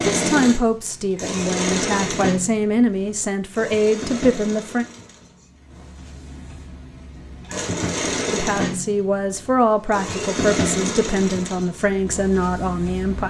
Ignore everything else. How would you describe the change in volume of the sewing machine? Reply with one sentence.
The loudness of the sewing machine goes down, then up.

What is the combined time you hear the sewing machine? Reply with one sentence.
You can hear the sewing machine for 13 seconds altogether.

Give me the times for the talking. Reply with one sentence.
The talking can be heard from 0.1 to 4.8 s and from 8.3 to 13.2 s.